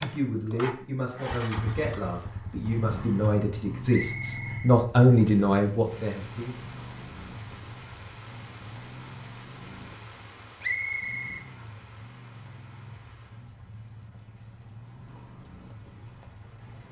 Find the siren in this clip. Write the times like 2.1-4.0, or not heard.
not heard.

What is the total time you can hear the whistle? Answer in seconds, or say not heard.
2 s.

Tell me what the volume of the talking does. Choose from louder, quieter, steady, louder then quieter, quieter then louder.
louder.